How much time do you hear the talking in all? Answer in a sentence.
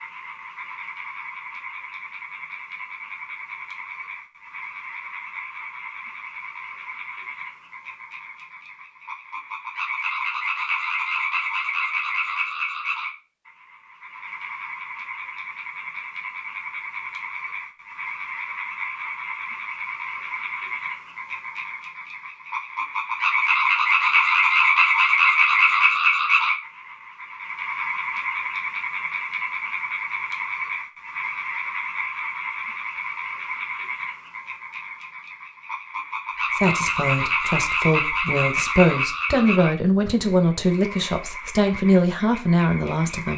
The talking can be heard for 7 seconds in total.